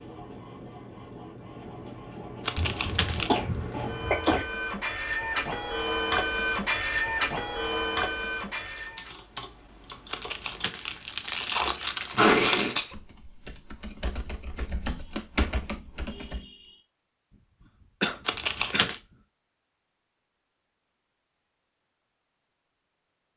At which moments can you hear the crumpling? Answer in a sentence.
The crumpling can be heard from 2.5 to 3.3 s, from 10.1 to 12.8 s and from 18.2 to 19.0 s.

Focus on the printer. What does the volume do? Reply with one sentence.
The loudness of the printer goes up.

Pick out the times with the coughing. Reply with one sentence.
You can hear the coughing from 2.5 to 4.5 s, from 12.2 to 12.9 s and from 18.0 to 18.9 s.